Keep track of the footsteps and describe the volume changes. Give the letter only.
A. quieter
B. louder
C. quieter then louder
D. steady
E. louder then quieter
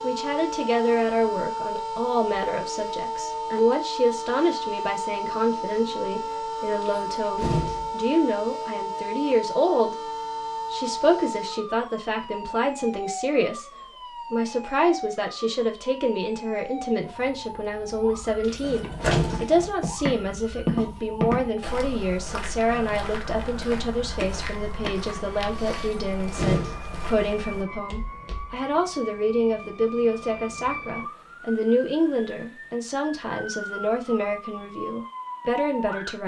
A.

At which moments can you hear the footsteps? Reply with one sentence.
You can hear the footsteps from 18.4 to 28.6 s.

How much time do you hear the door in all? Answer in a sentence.
The door can be heard for 3 seconds in total.